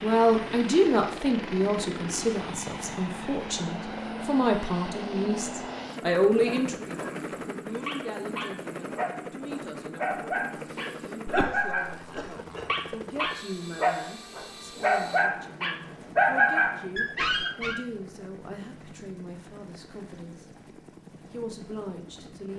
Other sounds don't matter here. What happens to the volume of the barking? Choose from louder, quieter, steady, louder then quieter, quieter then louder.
louder.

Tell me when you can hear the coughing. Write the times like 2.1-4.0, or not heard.
10.7-12.7.